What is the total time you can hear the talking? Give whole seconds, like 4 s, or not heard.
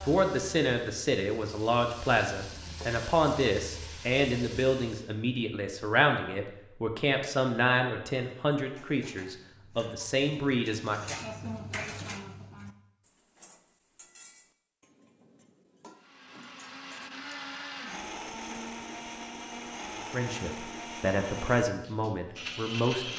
14 s.